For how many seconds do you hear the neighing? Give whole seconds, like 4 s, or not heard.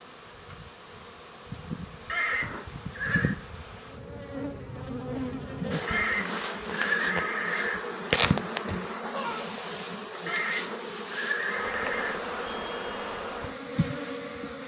5 s.